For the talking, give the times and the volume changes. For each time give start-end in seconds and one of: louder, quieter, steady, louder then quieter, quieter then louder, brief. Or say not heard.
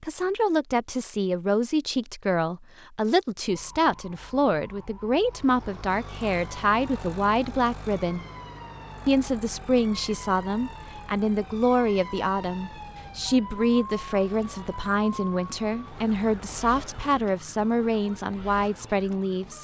0.0-8.2 steady
9.1-19.5 steady.